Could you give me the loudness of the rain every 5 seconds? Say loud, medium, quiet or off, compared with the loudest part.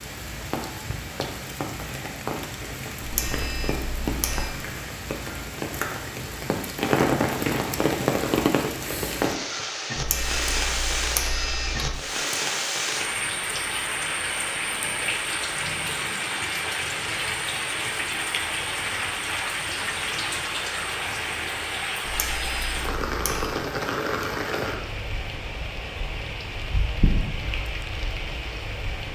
medium, loud, loud, loud, loud, medium.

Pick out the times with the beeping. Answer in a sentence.
You can hear the beeping from 3.0 to 4.5 s, from 9.9 to 11.9 s and from 22.0 to 23.6 s.